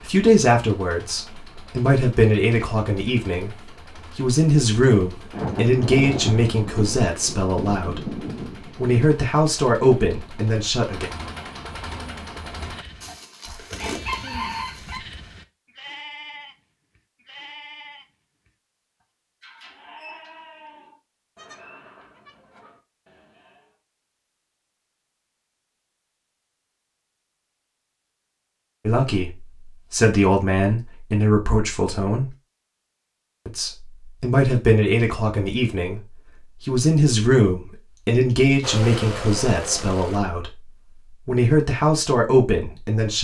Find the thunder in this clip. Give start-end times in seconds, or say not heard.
5.3-9.0.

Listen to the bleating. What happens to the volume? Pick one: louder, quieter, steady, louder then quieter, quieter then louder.
quieter.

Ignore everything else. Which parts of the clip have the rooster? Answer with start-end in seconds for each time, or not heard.
13.0-15.0.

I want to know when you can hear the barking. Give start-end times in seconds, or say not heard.
not heard.